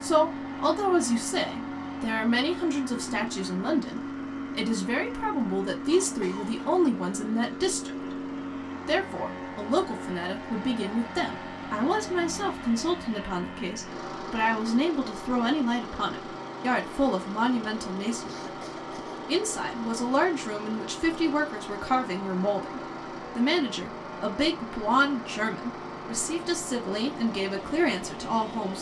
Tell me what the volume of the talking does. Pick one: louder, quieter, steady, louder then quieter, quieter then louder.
steady.